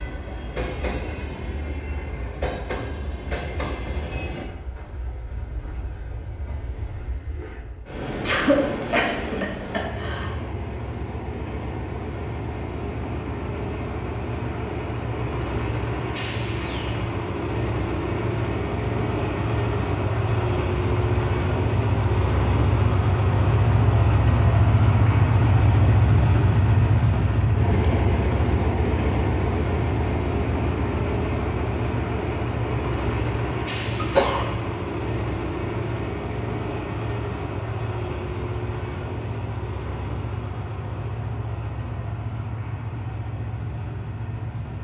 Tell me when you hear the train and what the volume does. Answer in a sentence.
The train can be heard from 0.0 to 44.7 s, getting louder then quieter.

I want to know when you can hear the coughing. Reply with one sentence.
The coughing can be heard from 8.2 to 10.3 s and from 34.0 to 34.5 s.